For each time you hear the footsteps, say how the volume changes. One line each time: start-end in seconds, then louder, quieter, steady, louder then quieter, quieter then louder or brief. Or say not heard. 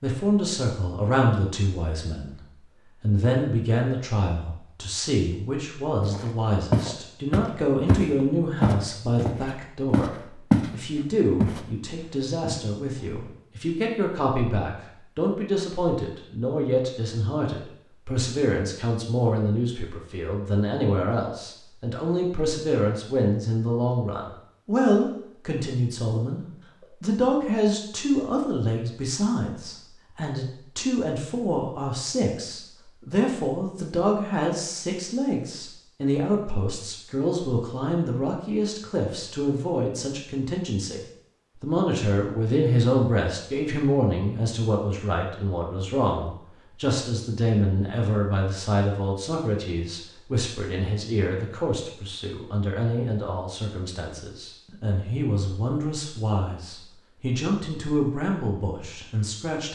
6.0-10.7 quieter then louder
11.4-13.4 brief.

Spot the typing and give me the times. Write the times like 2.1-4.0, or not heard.
not heard.